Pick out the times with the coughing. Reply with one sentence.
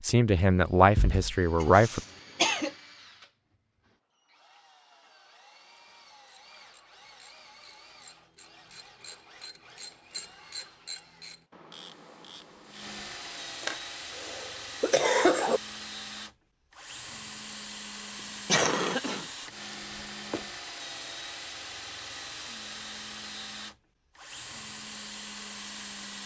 The coughing can be heard from 1.6 to 2.8 s, from 13.6 to 15.6 s and from 18.4 to 19.2 s.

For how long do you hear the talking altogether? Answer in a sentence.
The talking can be heard for 2 seconds in total.